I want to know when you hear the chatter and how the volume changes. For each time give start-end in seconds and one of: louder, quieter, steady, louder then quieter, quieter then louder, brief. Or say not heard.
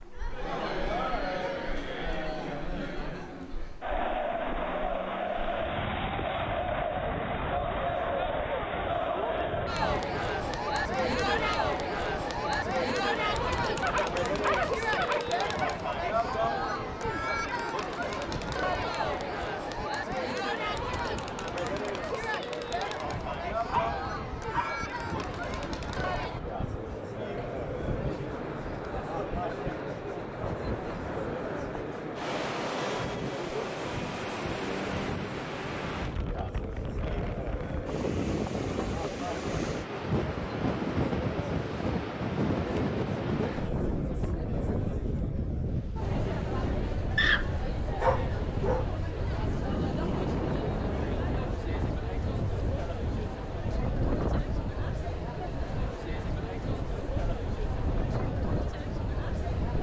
0.0-59.7 quieter.